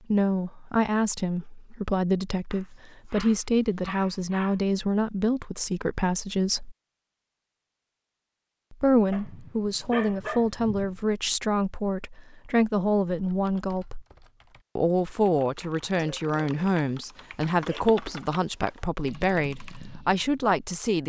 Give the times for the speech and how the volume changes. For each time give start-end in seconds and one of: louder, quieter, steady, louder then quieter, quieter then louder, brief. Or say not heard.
0.1-6.8 steady
8.7-14.1 steady
14.8-21.0 steady.